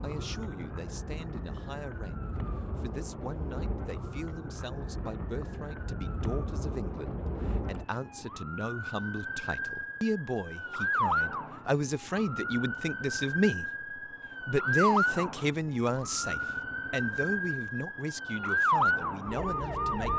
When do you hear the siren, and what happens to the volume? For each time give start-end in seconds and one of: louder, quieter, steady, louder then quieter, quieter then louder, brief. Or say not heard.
0.0-20.1 louder.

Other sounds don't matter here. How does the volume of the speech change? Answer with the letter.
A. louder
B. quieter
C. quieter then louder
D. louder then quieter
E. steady
D.